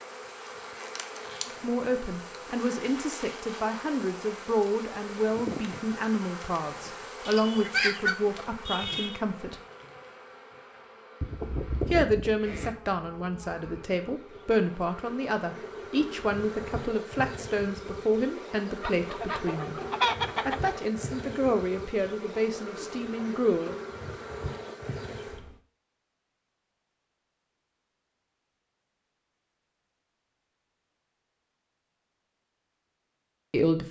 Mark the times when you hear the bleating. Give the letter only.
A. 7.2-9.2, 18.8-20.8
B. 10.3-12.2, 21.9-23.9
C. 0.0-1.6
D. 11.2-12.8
D.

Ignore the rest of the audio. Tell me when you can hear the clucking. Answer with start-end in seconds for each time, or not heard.
7.2-9.2, 18.8-20.8.